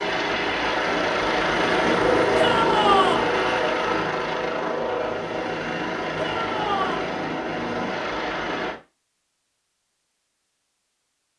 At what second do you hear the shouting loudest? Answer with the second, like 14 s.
3 s.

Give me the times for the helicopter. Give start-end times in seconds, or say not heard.
0.0-8.8.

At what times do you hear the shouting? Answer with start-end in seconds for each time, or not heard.
2.4-3.2, 6.2-7.0.